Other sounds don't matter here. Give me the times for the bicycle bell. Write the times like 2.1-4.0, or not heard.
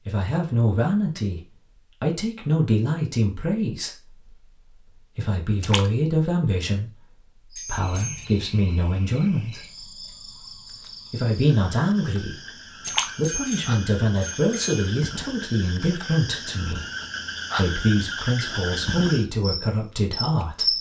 7.5-8.3, 13.1-14.9.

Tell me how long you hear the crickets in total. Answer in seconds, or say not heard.
13 s.